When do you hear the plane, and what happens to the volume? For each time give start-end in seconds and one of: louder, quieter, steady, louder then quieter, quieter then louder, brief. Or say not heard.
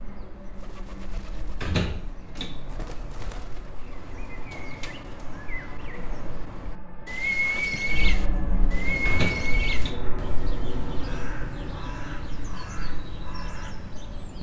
0.0-14.3 louder then quieter.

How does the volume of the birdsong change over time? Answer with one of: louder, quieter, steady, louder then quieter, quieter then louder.
louder then quieter.